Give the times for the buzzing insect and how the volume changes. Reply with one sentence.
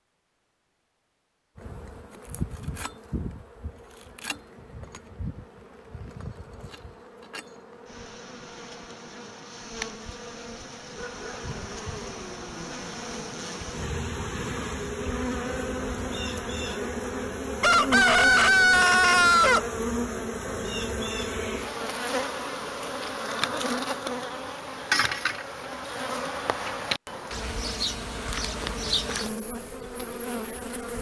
The buzzing insect can be heard from 1.6 to 30.9 s, getting louder.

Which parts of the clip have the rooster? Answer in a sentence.
You can hear the rooster from 17.6 to 19.6 s.